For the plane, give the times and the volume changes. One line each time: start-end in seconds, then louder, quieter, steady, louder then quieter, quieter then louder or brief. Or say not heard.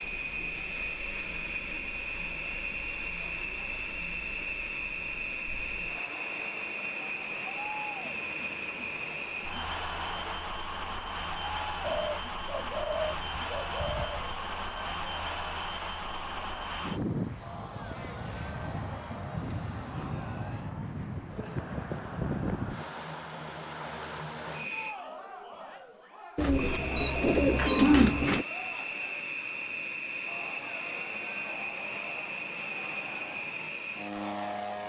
0.0-24.9 steady
26.5-34.8 steady.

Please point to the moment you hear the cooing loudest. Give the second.
28 s.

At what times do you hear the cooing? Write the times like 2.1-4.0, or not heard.
11.8-14.4, 26.4-28.4.